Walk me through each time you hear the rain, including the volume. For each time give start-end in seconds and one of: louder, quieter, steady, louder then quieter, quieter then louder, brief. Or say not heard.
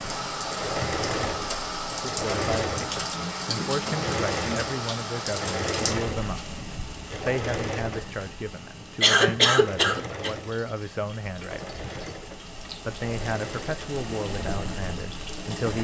0.0-15.7 quieter then louder.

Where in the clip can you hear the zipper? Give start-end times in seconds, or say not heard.
not heard.